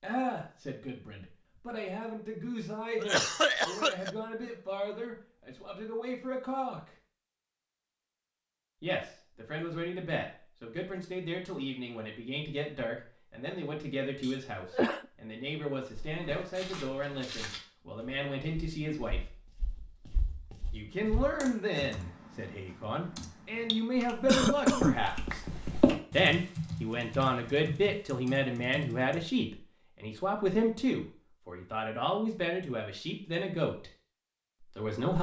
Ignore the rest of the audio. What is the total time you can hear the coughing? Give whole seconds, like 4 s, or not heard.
3 s.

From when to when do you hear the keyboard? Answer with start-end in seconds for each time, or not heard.
21.4-29.2.